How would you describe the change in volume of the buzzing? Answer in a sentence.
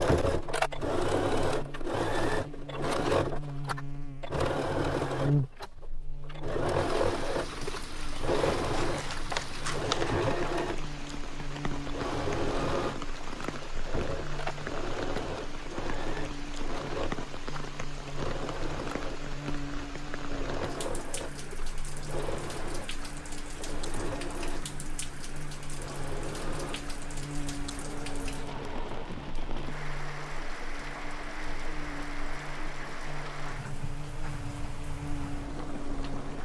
The volume of the buzzing goes down.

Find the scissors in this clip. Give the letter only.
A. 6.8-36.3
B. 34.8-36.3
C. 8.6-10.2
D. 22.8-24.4
C.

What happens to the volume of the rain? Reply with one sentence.
The volume of the rain stays about the same.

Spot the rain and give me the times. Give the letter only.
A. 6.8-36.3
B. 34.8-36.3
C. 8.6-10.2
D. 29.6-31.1
A.